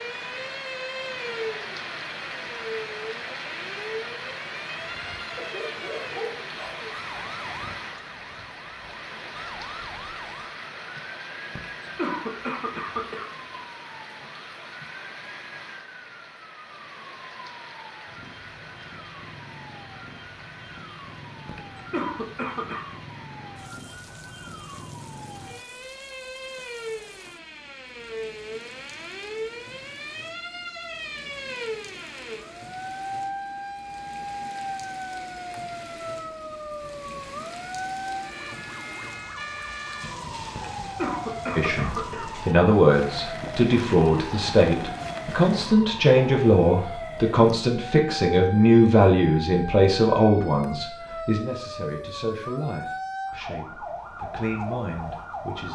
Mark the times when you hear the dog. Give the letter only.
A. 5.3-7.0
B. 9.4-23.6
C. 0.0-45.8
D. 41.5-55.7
A.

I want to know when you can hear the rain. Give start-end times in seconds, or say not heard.
0.0-45.8.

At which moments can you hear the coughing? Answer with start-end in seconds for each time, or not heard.
11.6-13.3, 21.4-22.9, 40.5-42.3.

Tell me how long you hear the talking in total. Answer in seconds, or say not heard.
14 s.